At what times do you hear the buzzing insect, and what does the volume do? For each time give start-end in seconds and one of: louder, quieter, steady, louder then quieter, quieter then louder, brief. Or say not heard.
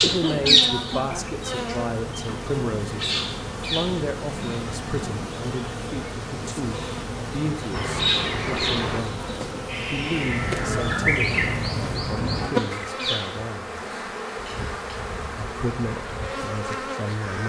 0.0-17.4 steady.